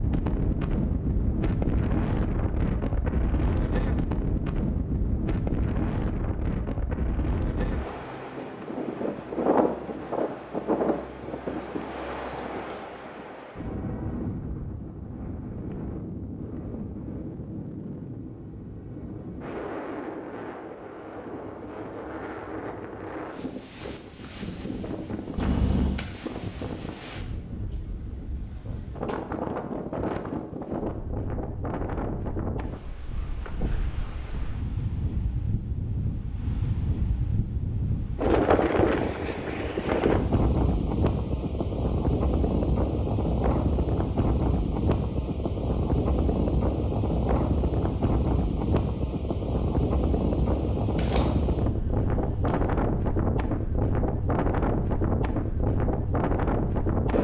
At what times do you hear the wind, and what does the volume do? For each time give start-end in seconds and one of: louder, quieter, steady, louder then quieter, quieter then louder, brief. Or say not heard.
0.0-57.2 quieter then louder.